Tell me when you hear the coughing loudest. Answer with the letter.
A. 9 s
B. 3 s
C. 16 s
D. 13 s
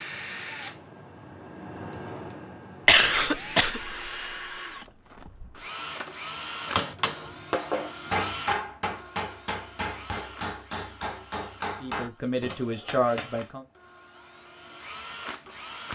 B.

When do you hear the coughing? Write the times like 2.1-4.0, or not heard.
2.9-4.3.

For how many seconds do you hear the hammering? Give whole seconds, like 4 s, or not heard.
7 s.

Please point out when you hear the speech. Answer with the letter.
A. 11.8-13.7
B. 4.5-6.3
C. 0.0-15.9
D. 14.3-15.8
A.